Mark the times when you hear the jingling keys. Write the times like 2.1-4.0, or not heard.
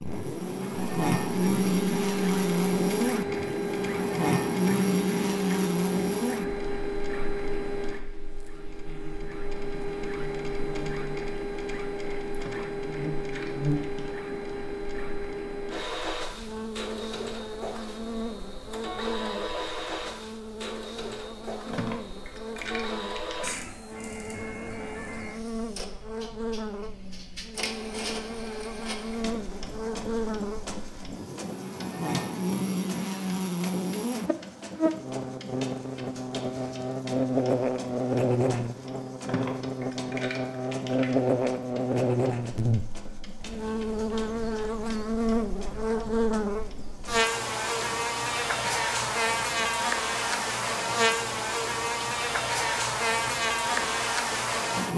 12.3-14.2, 21.6-23.6, 39.2-41.2.